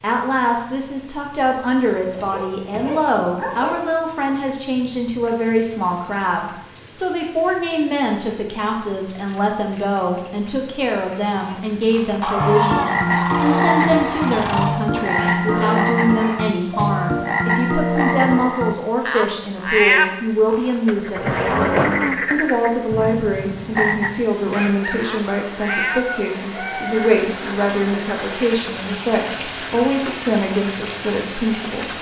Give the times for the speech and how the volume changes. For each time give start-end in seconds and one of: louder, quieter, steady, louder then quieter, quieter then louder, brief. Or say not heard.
0.0-31.9 steady.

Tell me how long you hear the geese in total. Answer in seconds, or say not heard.
3 s.